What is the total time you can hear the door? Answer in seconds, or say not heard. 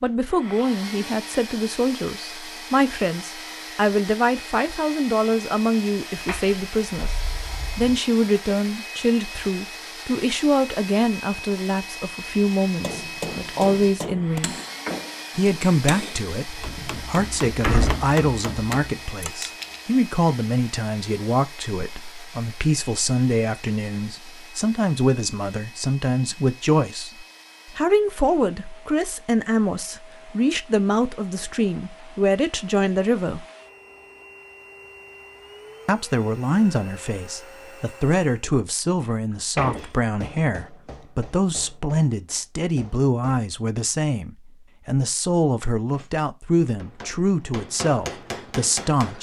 5 s.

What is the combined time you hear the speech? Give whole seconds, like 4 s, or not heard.
45 s.